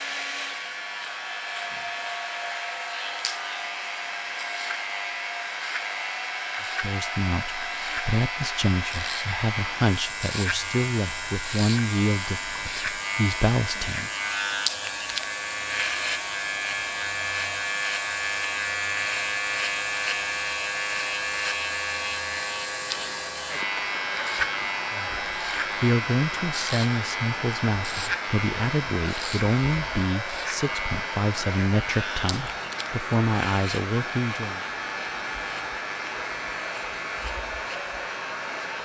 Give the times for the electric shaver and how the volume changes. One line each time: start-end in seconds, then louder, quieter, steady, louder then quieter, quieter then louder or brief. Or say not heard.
0.0-38.8 louder then quieter.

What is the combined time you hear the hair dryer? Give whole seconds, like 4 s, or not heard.
39 s.